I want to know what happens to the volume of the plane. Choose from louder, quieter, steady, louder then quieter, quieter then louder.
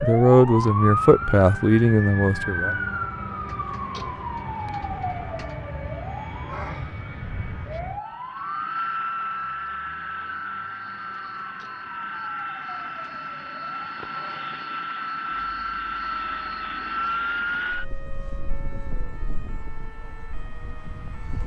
louder.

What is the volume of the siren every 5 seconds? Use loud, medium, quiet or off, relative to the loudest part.
loud, medium, quiet, quiet, quiet.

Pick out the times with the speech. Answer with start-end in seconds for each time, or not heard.
0.0-2.8.